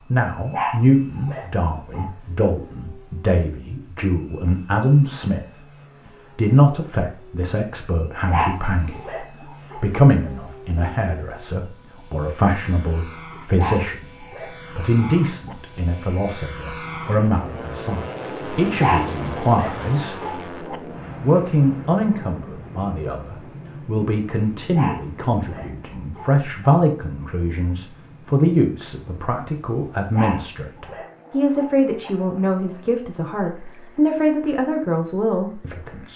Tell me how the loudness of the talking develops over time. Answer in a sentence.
The loudness of the talking stays about the same.